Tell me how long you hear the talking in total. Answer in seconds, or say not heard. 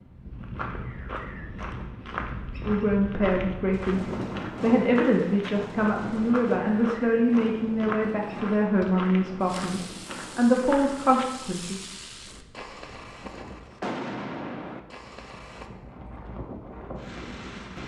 9 s.